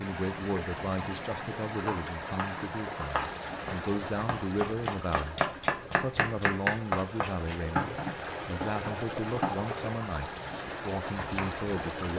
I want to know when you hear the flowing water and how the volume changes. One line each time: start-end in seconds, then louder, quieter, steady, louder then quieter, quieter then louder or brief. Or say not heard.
0.0-12.1 quieter then louder.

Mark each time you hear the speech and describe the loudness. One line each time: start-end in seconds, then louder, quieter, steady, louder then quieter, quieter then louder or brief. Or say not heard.
0.0-12.1 steady.